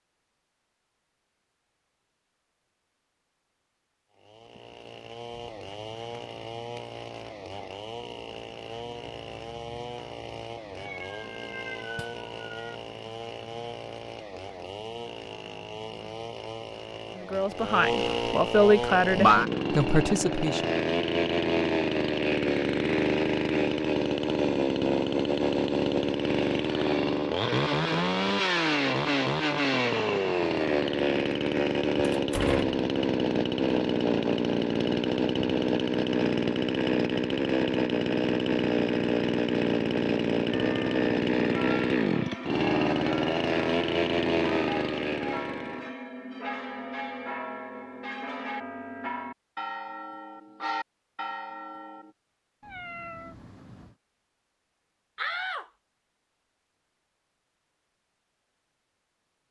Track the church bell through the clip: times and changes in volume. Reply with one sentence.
You can hear the church bell from 40.5 to 52.1 s, at a steady volume.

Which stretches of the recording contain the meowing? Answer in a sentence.
The meowing can be heard from 10.8 to 12.8 s and from 52.6 to 54.0 s.